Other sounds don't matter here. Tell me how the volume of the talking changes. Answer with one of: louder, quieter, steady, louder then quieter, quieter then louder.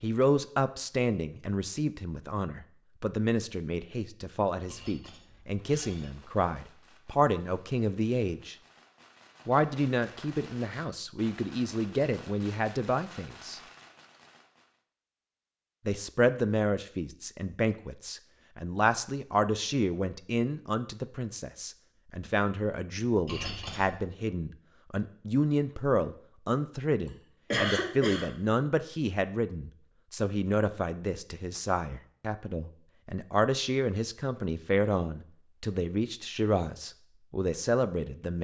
steady.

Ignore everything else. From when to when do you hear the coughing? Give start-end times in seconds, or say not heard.
27.5-28.3.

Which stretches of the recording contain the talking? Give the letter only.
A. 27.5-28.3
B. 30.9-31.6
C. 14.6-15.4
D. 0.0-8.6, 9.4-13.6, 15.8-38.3
D.